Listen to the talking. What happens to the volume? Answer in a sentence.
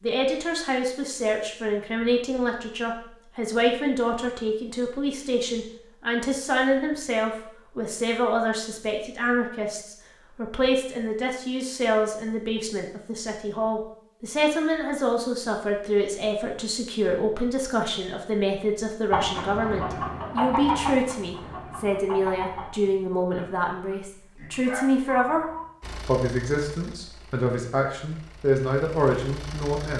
The loudness of the talking stays about the same.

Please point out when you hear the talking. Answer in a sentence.
The talking can be heard from 0.0 to 25.4 s and from 26.1 to 29.9 s.